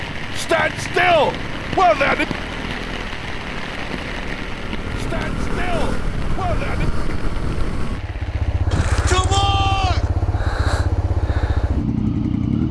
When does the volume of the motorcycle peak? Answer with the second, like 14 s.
12 s.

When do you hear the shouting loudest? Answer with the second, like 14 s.
1 s.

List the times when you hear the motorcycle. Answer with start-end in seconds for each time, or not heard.
0.0-12.6.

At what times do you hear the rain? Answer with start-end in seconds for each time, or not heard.
0.0-8.7.